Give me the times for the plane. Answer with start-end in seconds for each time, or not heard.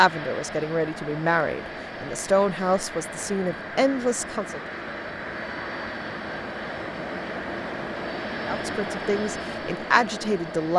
0.0-10.7.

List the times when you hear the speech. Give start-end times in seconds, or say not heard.
0.0-4.6, 8.4-10.7.